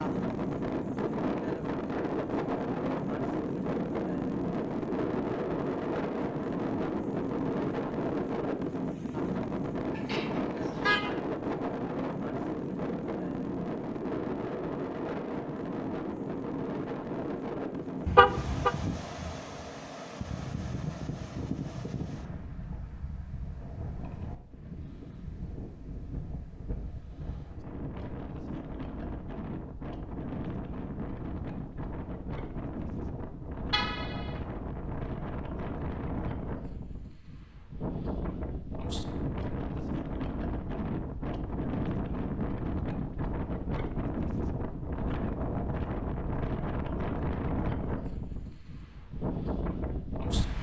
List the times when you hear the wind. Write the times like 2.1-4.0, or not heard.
0.0-50.5.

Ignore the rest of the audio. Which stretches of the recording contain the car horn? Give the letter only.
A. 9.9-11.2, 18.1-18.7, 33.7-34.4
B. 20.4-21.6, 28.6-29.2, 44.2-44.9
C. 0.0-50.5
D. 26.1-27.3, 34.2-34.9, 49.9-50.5
A.